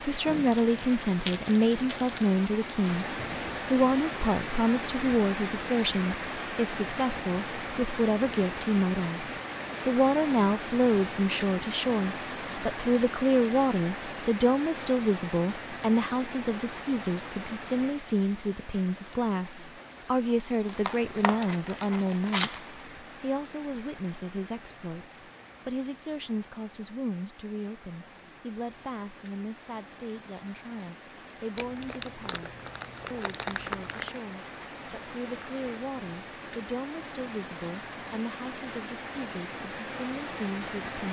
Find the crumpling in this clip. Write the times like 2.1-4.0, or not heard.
0.2-2.3, 20.6-22.8, 31.6-34.2.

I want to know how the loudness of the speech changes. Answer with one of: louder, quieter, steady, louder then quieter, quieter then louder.
quieter.